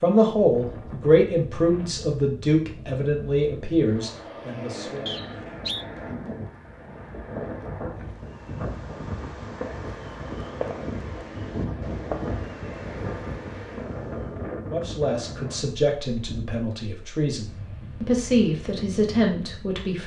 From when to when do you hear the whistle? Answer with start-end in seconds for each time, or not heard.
5.0-5.8.